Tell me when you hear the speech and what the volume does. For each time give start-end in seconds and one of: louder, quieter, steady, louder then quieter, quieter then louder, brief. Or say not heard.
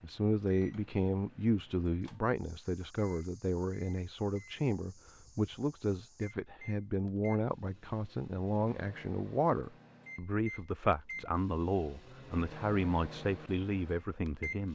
0.0-14.7 steady.